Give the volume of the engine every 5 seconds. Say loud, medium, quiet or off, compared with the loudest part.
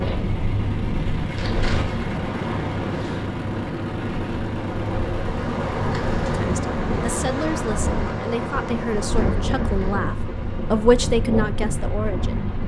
loud, loud, medium.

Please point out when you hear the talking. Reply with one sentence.
You can hear the talking from 6.3 to 12.5 s.